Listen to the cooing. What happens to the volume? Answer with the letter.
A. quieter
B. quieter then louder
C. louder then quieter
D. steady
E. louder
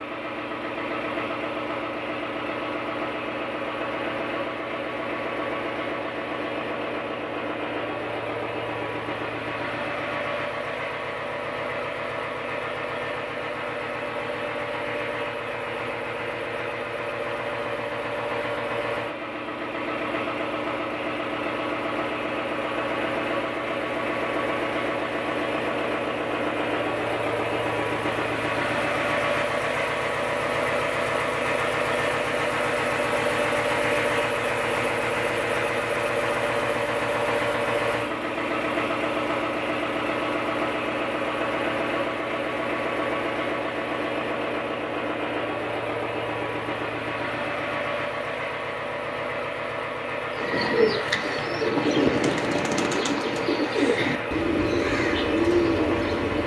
D.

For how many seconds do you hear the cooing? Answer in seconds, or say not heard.
6 s.